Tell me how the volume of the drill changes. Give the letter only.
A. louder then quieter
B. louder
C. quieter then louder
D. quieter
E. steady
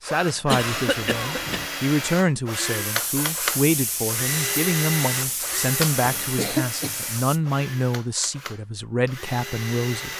D.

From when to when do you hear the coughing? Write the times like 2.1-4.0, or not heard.
0.5-1.7, 5.4-7.0.